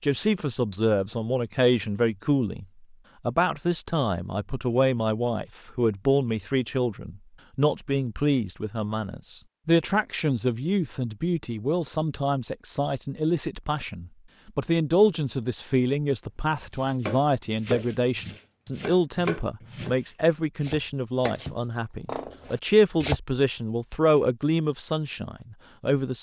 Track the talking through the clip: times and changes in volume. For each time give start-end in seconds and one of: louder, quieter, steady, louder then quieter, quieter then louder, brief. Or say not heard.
0.0-2.6 brief
3.2-26.1 steady.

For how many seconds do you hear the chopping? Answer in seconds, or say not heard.
7 s.